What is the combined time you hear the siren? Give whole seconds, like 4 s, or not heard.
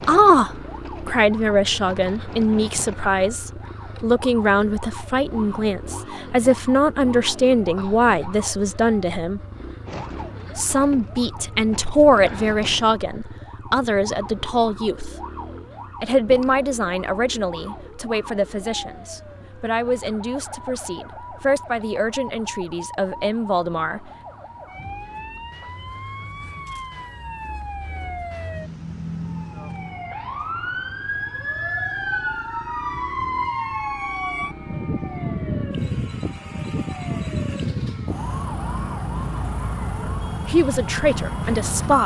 42 s.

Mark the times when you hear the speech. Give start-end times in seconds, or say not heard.
0.1-9.4, 10.6-15.1, 16.0-24.0, 40.5-42.0.